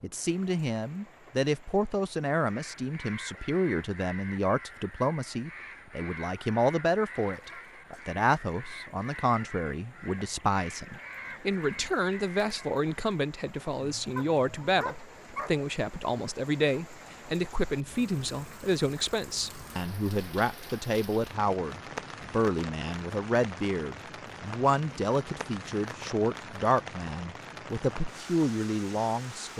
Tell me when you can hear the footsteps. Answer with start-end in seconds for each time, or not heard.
not heard.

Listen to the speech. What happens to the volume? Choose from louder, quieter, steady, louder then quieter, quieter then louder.
steady.